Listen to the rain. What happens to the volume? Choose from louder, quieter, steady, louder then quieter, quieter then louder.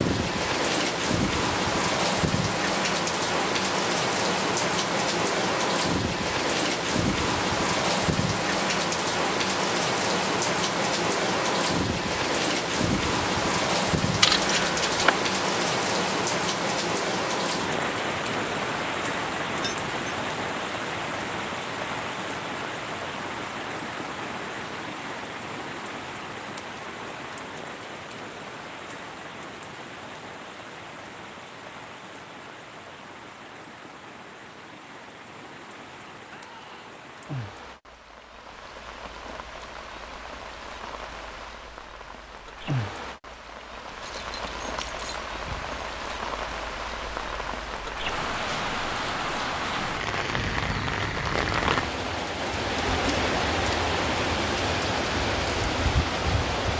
quieter then louder.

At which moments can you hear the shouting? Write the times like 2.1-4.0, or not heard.
36.2-37.0.